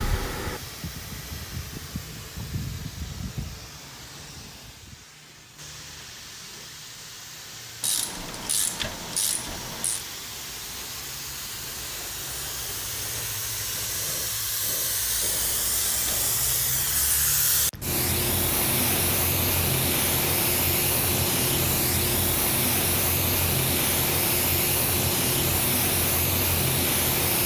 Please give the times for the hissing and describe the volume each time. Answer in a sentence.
You can hear the hissing from 0.0 to 27.4 s, getting louder.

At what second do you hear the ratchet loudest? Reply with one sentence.
The loudest moment of the ratchet is at 9 seconds.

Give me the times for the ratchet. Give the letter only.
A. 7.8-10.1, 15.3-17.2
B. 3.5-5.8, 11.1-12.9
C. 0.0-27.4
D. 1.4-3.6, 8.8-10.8
A.